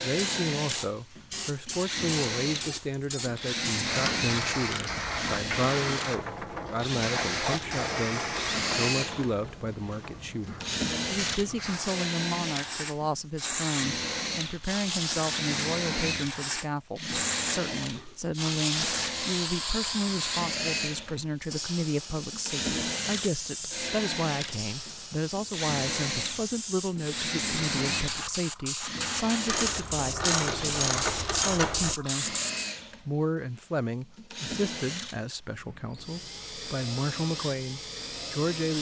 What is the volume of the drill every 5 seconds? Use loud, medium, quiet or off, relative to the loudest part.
loud, loud, loud, loud, loud, loud, medium, medium.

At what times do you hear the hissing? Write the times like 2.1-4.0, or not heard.
0.1-32.7.